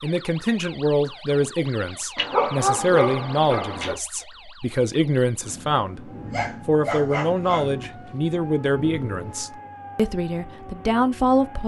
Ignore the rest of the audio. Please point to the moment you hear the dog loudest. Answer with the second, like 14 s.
3 s.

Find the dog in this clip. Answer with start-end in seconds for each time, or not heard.
2.1-4.0, 6.3-7.8.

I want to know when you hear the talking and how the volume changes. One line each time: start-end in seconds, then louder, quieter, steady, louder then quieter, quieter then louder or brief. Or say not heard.
0.0-11.6 steady.